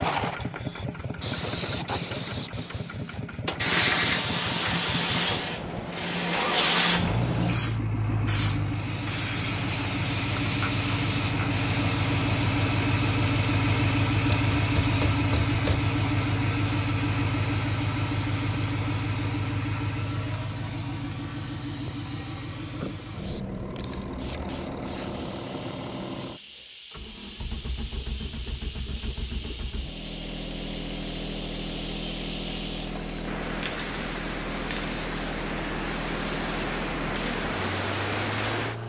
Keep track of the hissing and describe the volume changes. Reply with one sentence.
The loudness of the hissing goes down, then up.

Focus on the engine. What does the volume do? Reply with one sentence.
The volume of the engine goes up, then down.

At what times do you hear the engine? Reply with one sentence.
The engine can be heard from 0.0 to 38.8 s.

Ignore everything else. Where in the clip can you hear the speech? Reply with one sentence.
You can't hear the speech here.